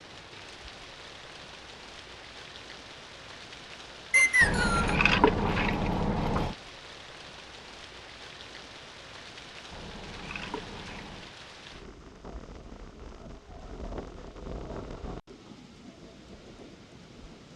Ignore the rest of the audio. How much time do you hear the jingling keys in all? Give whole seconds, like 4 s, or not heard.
4 s.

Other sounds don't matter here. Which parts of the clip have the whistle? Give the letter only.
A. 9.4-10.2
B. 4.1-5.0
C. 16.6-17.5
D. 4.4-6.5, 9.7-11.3
B.